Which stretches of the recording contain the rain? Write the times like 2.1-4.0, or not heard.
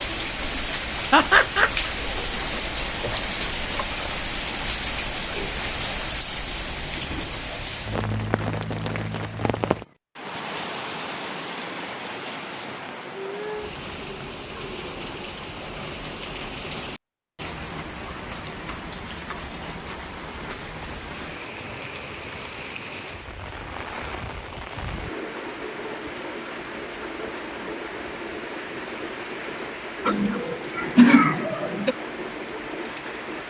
0.0-33.4.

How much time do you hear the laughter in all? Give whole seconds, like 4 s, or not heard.
3 s.